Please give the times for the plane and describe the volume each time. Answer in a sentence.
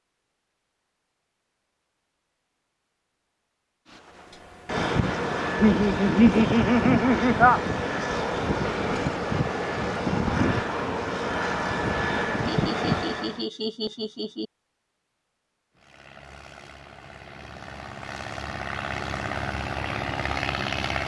The plane can be heard from 3.9 to 13.4 s, at a steady volume; and from 15.8 to 21.0 s, getting louder.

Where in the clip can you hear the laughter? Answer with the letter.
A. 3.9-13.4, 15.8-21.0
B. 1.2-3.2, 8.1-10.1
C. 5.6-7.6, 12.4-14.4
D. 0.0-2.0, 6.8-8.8
C.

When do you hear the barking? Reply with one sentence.
The barking can't be heard in this clip.